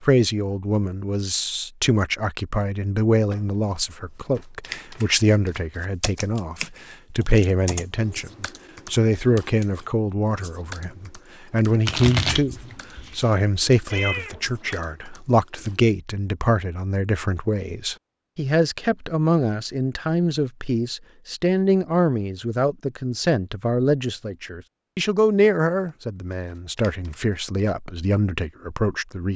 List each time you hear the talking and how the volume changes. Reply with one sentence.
The talking can be heard from 0.0 to 29.3 s, at a steady volume.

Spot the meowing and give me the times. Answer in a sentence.
The meowing can be heard from 13.9 to 14.8 s.